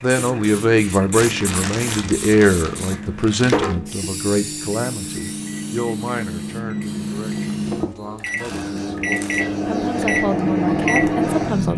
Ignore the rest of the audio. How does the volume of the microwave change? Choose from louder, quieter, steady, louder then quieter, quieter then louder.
louder.